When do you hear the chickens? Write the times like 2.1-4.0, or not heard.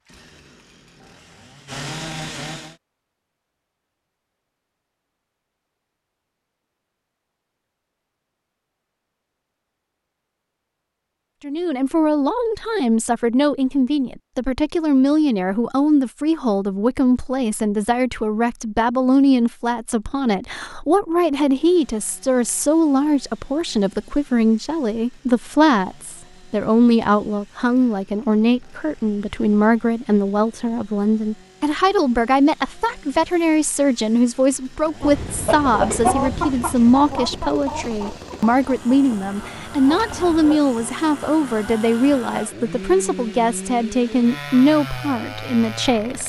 35.0-40.6.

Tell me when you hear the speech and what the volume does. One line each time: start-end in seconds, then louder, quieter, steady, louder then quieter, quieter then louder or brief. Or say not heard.
11.4-46.2 steady.